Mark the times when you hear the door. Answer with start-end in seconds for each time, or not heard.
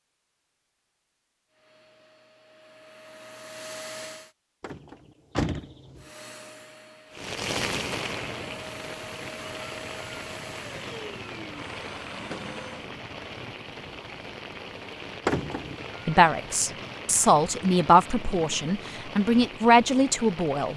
4.6-6.1, 15.2-15.9.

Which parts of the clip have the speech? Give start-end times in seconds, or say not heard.
16.1-20.7.